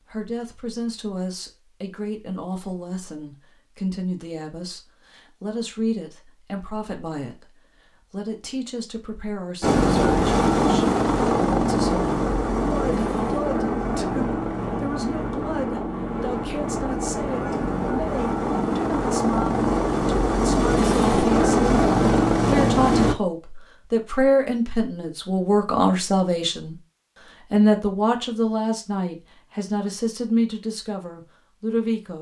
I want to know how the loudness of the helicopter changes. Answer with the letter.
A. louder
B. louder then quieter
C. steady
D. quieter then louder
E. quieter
D.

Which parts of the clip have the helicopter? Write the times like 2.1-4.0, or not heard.
9.6-23.1.